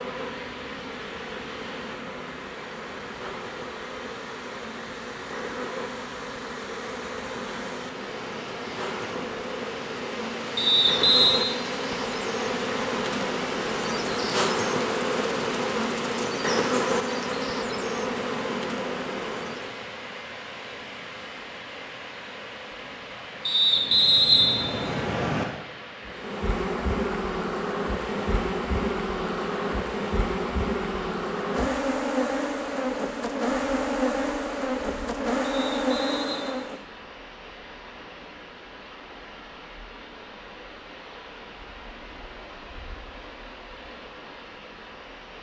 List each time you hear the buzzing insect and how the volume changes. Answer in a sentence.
You can hear the buzzing insect from 0.0 to 19.9 s, getting louder; and from 26.0 to 36.9 s, at a steady volume.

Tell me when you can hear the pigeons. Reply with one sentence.
The pigeons can't be heard in this clip.